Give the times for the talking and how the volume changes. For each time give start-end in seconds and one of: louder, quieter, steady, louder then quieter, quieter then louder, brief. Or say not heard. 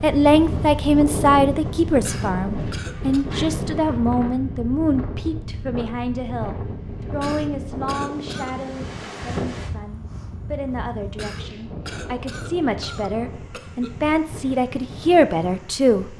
0.0-16.1 quieter then louder.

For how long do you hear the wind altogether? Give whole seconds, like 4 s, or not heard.
16 s.